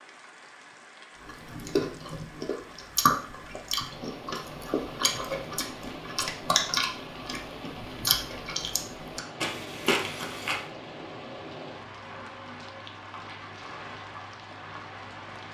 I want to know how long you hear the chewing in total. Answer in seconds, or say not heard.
9 s.